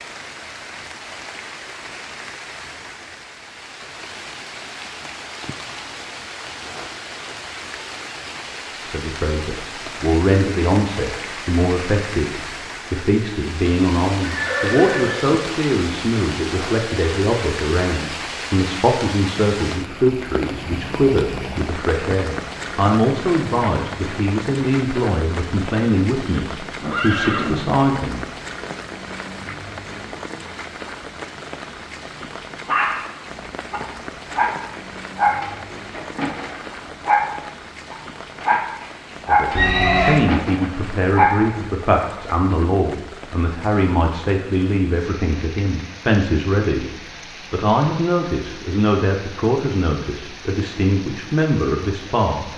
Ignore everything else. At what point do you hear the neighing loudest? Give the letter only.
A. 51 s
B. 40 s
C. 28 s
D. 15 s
B.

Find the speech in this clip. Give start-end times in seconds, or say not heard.
8.8-28.2, 39.2-46.9, 47.5-52.5.